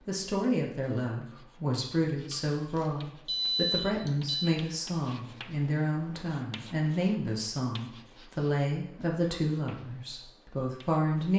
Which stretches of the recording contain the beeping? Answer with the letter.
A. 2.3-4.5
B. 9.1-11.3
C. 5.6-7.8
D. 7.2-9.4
A.